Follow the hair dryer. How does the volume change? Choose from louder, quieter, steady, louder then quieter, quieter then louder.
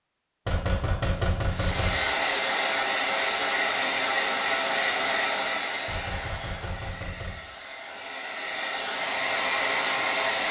quieter then louder.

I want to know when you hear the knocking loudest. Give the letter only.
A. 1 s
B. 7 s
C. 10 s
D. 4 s
A.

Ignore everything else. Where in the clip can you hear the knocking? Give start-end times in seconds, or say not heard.
0.5-2.0, 5.8-7.4.